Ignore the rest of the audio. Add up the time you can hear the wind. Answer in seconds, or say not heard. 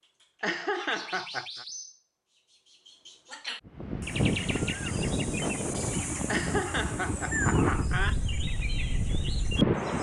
6 s.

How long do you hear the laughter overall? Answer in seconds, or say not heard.
3 s.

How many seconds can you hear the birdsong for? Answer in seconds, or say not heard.
10 s.